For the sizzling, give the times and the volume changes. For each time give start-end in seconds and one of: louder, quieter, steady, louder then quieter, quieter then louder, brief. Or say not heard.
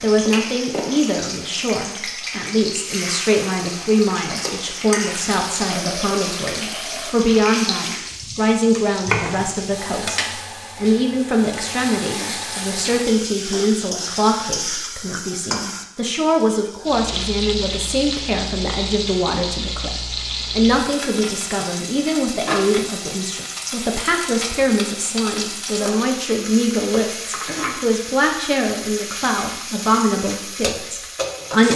0.0-31.7 steady.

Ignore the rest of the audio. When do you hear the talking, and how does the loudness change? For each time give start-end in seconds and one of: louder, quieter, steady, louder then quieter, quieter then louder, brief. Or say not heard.
0.0-31.7 steady.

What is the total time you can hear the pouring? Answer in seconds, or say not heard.
2 s.